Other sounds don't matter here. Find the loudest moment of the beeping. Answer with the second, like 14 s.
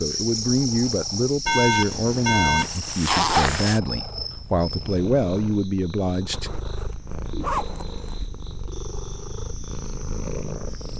2 s.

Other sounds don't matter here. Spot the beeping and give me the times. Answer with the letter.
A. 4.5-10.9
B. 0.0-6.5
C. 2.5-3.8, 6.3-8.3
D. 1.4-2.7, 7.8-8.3
D.